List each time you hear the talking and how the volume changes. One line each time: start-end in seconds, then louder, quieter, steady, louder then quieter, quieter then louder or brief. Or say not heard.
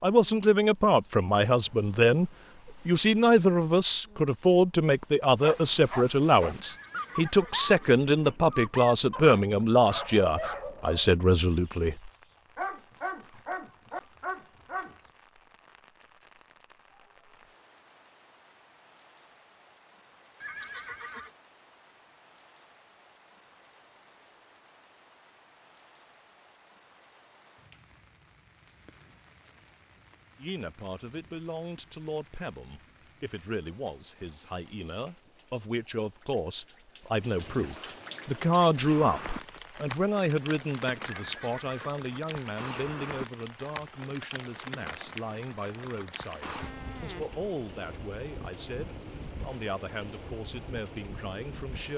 0.0-12.1 steady
30.4-51.9 louder then quieter.